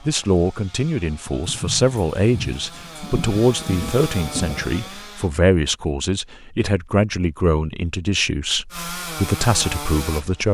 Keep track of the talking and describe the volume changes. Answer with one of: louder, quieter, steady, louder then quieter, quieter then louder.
steady.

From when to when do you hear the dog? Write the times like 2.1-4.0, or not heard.
not heard.